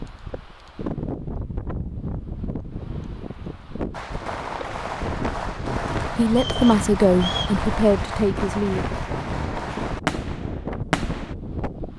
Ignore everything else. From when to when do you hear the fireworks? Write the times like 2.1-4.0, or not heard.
3.9-11.3.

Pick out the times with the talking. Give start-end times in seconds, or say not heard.
6.2-8.9.